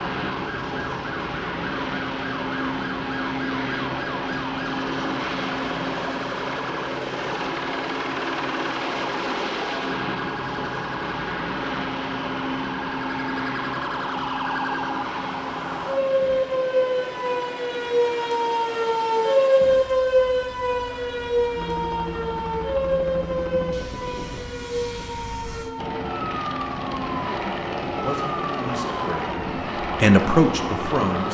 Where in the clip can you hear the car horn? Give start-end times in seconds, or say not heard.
not heard.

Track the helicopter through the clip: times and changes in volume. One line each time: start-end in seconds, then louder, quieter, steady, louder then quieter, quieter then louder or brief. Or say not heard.
0.0-31.2 quieter then louder.